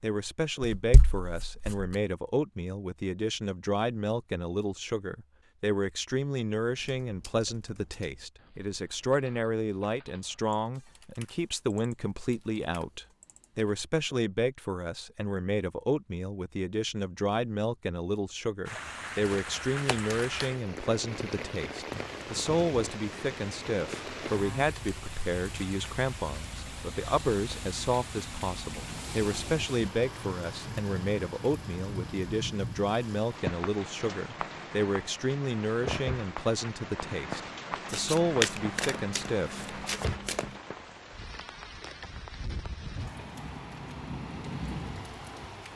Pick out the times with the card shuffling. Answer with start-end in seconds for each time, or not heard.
0.6-1.9, 19.2-20.5, 37.9-40.5.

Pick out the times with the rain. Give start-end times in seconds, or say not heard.
18.6-45.7.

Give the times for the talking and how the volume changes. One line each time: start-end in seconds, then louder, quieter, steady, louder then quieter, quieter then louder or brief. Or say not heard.
0.0-40.0 steady.